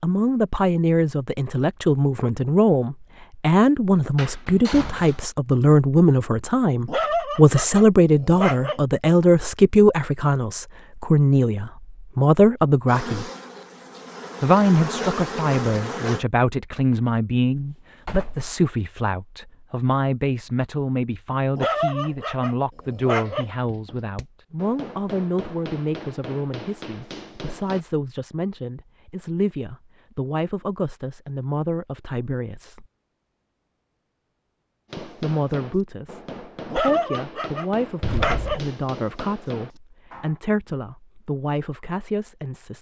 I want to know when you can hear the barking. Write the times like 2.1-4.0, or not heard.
6.8-8.8, 21.6-23.5, 36.7-38.6.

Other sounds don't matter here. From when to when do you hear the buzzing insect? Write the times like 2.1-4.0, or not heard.
12.8-16.2.